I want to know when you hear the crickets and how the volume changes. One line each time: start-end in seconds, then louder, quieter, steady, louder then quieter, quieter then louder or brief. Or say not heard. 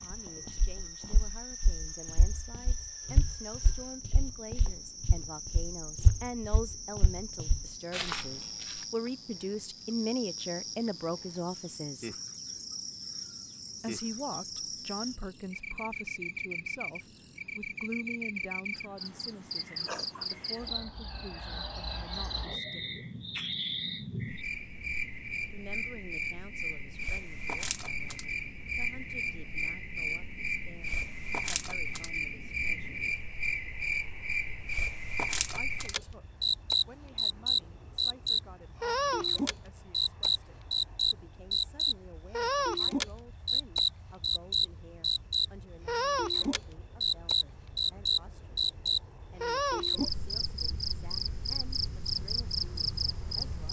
0.0-53.6 louder.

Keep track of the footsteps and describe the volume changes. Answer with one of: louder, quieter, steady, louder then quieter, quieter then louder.
louder.